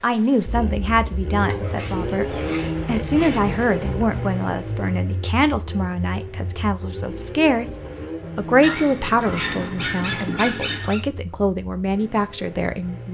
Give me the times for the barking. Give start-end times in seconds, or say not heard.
1.4-3.6, 8.6-11.1.